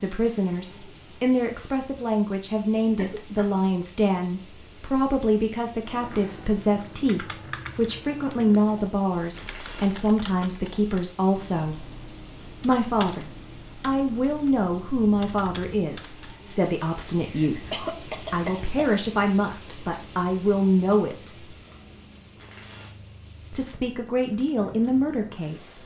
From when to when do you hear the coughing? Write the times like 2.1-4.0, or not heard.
3.0-3.6, 16.9-18.9.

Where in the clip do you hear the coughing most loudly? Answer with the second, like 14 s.
18 s.